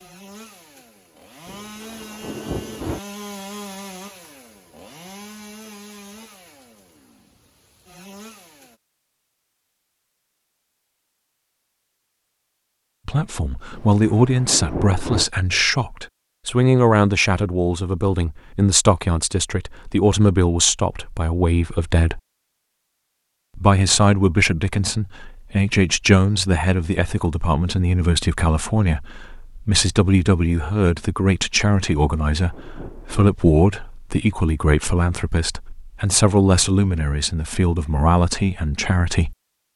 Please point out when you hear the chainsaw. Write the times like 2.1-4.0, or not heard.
0.0-8.8.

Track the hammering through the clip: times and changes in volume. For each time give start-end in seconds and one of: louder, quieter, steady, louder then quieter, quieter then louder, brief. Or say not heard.
not heard.